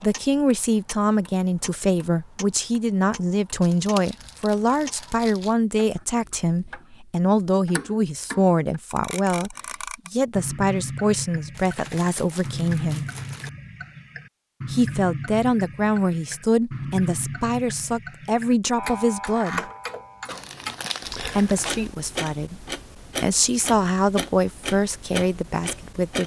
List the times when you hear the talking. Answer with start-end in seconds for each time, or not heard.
0.0-13.1, 14.7-19.6, 21.2-22.6, 23.2-26.2.